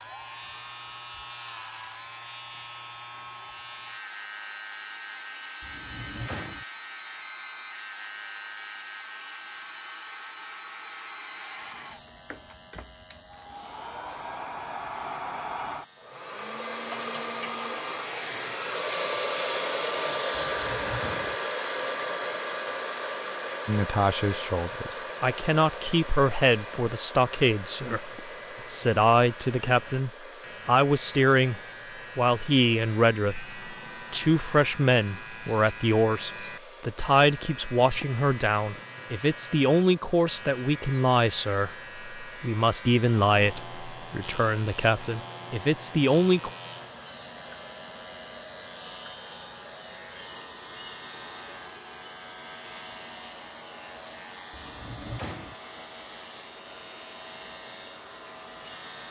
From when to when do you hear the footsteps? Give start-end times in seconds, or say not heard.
not heard.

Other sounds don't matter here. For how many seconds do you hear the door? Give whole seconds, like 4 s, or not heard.
3 s.